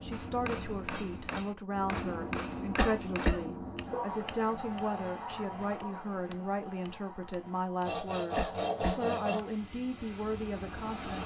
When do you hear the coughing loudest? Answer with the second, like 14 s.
3 s.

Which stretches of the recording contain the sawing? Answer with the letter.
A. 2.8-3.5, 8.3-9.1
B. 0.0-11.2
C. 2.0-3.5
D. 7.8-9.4
D.